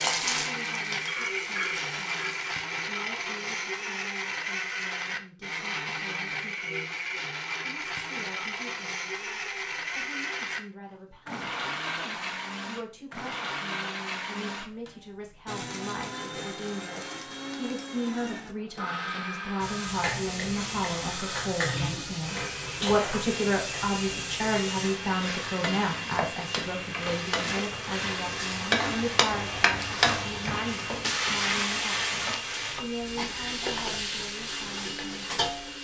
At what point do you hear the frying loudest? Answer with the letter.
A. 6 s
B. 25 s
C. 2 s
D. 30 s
D.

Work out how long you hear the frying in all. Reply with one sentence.
You can hear the frying for 19 seconds altogether.